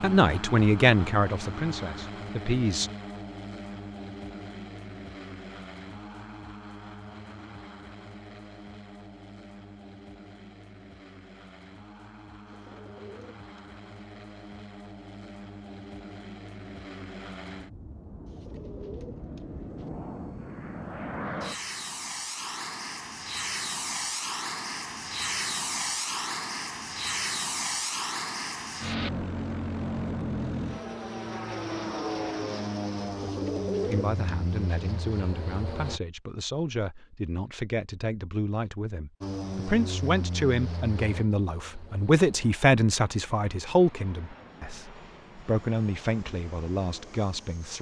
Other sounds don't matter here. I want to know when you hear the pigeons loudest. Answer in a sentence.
The loudest moment of the pigeons is at 34 seconds.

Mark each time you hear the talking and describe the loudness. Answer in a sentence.
You can hear the talking briefly from 0.0 to 2.9 s; and from 33.9 to 47.7 s, getting louder then quieter.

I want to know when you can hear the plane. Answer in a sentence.
The plane can be heard from 0.0 to 36.0 s and from 39.2 to 47.7 s.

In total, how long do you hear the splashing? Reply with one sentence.
The splashing can't be heard in this clip.